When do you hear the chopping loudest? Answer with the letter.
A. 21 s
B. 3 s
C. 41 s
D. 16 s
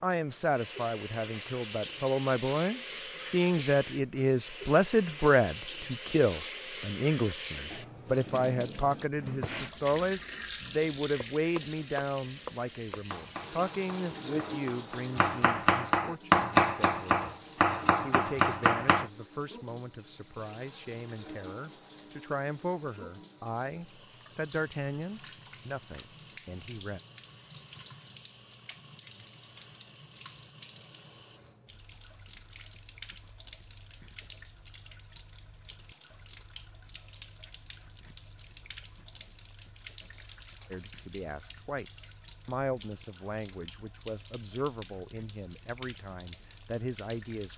D.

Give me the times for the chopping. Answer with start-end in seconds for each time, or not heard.
11.2-19.1.